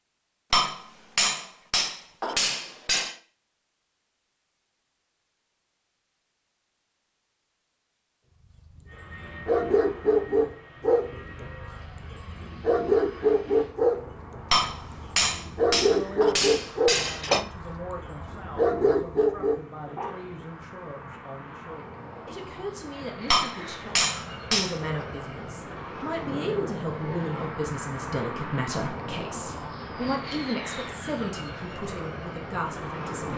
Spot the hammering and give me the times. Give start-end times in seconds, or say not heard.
0.5-3.1, 14.5-17.4, 23.3-25.1.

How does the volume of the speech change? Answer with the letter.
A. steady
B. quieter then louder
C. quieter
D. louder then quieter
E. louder
E.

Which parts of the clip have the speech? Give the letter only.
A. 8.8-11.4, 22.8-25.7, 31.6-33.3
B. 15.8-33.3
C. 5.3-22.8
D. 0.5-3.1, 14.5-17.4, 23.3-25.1
B.